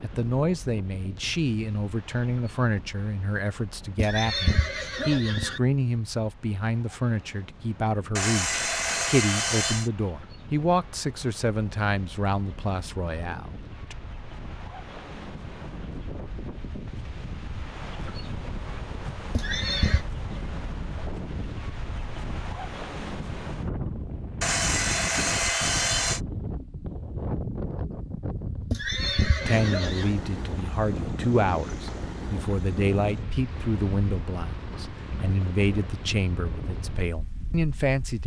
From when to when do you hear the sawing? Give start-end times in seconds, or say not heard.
8.2-9.9, 24.4-26.2.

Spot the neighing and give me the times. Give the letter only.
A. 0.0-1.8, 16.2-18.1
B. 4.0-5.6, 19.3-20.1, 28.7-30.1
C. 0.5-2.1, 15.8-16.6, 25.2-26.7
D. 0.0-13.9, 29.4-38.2
B.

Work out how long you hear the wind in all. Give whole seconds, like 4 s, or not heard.
38 s.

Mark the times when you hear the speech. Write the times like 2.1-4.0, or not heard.
0.0-13.9, 29.4-38.2.